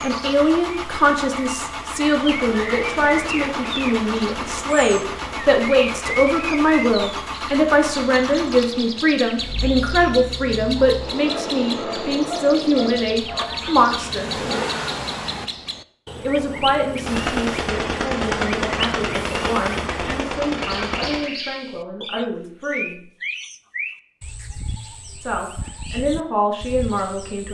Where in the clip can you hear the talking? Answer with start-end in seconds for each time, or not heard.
0.0-14.3, 16.2-23.0, 25.2-27.4.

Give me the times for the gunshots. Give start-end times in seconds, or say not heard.
2.1-6.6, 17.1-21.3.